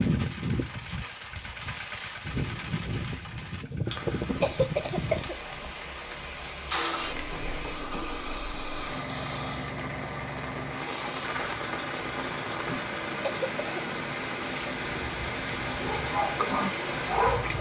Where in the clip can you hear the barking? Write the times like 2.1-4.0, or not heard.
15.7-17.5.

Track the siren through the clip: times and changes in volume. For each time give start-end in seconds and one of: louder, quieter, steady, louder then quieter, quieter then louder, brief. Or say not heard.
not heard.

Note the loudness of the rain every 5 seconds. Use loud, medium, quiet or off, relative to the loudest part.
medium, medium, loud, loud.